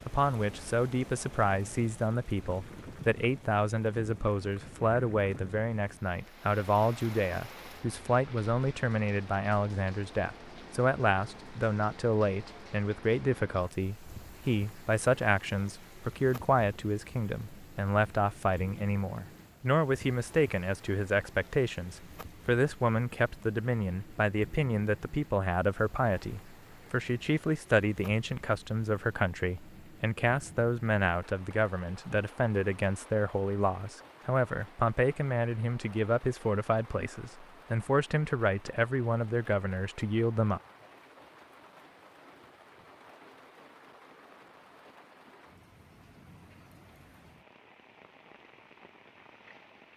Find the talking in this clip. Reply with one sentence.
The talking can be heard from 0.1 to 40.6 s.